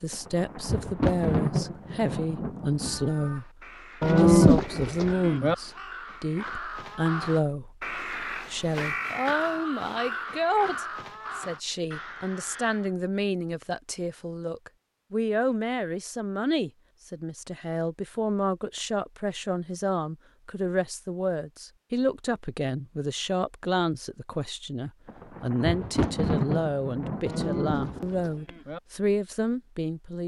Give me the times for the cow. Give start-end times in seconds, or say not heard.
4.0-5.5, 27.2-28.8.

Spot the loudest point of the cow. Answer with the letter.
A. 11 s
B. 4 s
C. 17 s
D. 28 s
B.